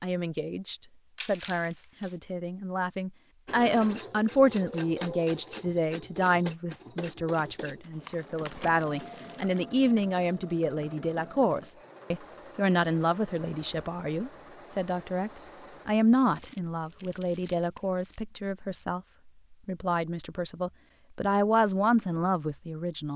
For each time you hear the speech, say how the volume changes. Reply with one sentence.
You can hear the speech from 0.0 to 23.1 s, at a steady volume.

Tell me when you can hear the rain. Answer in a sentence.
The rain can't be heard in this clip.